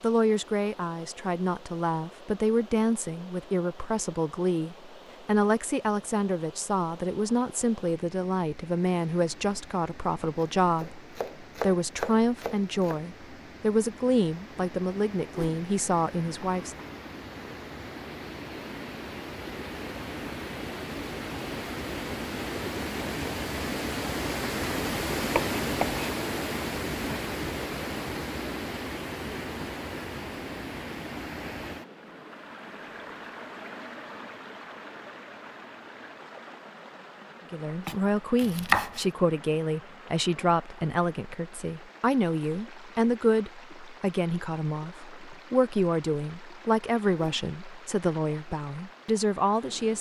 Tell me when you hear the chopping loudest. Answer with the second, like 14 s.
39 s.